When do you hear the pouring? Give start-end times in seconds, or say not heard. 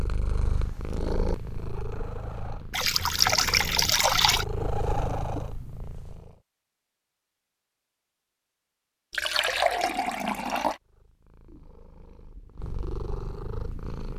2.7-4.5, 9.1-10.8.